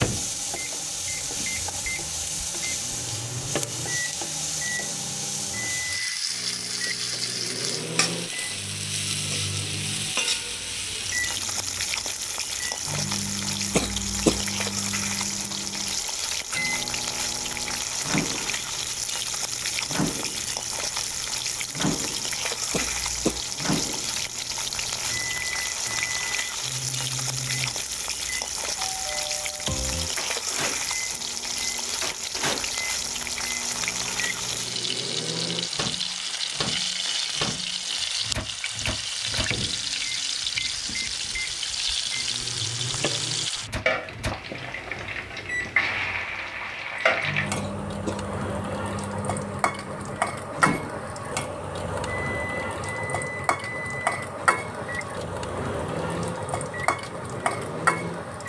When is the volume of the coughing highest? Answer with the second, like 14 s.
14 s.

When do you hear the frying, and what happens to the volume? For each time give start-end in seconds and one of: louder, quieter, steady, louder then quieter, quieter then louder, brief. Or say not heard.
0.0-58.4 steady.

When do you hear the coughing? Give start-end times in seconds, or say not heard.
13.7-14.4, 22.7-23.4, 47.5-48.2.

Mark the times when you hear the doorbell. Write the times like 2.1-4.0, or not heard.
28.8-30.1.